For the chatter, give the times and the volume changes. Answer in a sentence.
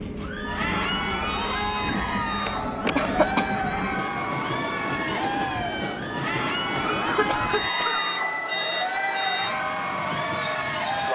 You can hear the chatter from 0.1 to 11.1 s, at a steady volume.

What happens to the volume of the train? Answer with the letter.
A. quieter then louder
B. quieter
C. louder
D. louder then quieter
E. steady
E.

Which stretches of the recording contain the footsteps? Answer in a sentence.
The footsteps can't be heard in this clip.